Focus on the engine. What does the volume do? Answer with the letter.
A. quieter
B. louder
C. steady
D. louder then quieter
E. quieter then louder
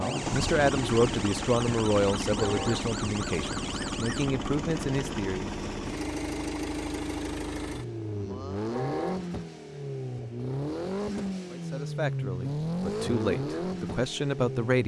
C.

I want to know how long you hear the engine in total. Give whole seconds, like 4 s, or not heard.
15 s.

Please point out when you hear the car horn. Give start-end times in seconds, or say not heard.
2.4-2.9, 8.7-9.3.